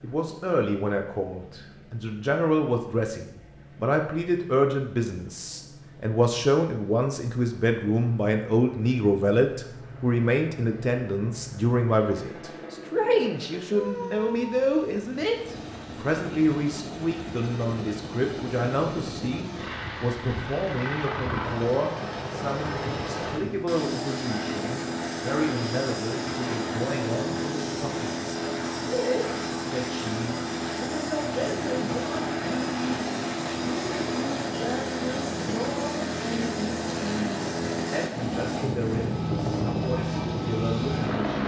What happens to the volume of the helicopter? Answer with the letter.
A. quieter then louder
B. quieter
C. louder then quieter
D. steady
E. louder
E.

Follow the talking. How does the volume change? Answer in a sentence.
The volume of the talking goes down.